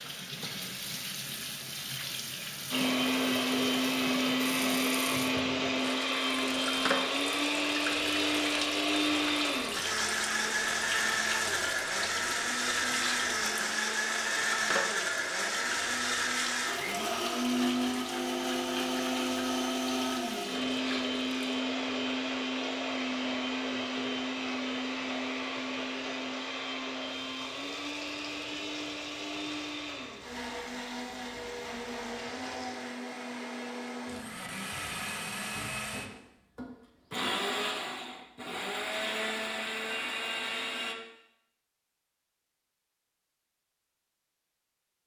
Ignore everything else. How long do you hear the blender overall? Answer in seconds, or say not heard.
38 s.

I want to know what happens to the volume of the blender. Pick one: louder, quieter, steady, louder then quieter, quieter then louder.
quieter.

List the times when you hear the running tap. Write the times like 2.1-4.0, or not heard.
0.0-32.9.